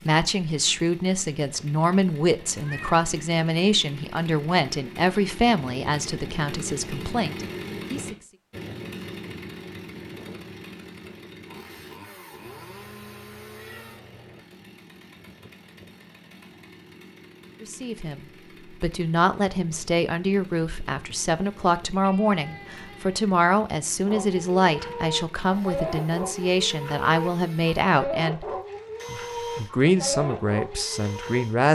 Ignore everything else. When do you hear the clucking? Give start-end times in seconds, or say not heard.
24.1-31.4.